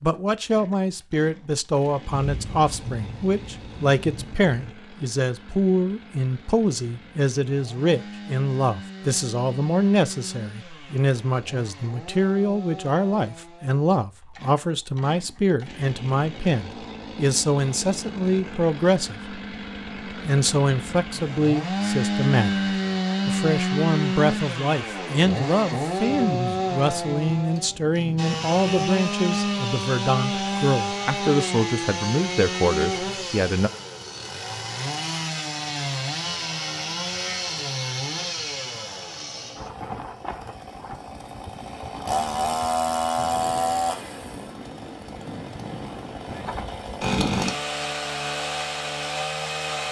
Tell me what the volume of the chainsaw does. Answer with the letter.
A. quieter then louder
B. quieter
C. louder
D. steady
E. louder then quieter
C.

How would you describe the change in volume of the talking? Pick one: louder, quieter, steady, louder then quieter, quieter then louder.
steady.